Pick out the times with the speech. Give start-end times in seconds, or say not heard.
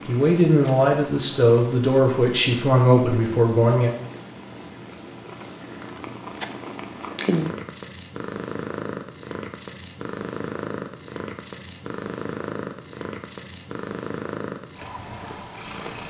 0.1-3.9.